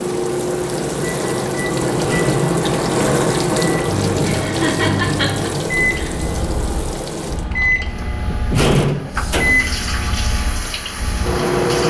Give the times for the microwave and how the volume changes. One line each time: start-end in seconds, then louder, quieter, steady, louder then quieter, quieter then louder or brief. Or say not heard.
0.0-11.8 steady.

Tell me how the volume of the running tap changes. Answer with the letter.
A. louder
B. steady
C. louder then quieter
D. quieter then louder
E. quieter
E.